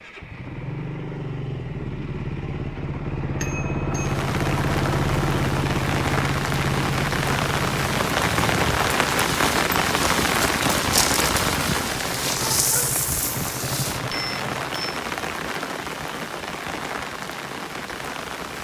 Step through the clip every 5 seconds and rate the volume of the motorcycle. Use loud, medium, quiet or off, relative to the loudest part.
loud, loud, medium, off.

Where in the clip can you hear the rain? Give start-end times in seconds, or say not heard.
3.9-18.5.